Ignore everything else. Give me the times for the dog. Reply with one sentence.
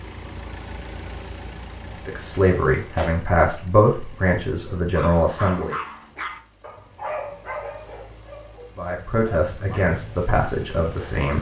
The dog can be heard from 4.9 to 10.2 s.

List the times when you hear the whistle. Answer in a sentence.
The whistle can't be heard in this clip.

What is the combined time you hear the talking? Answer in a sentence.
You can hear the talking for 6 seconds altogether.